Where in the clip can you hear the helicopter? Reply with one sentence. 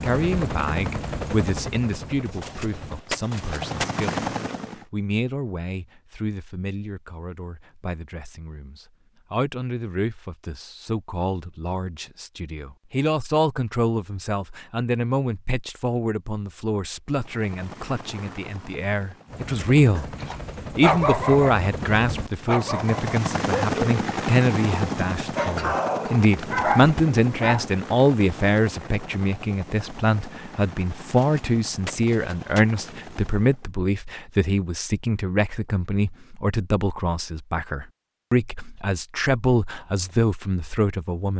The helicopter can be heard from 0.0 to 4.8 s and from 17.1 to 33.7 s.